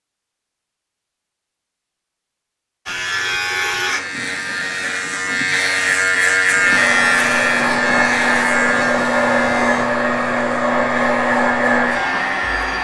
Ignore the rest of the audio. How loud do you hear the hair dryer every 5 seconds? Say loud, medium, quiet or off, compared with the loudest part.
off, loud, loud.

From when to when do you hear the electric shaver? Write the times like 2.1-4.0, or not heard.
2.9-12.7.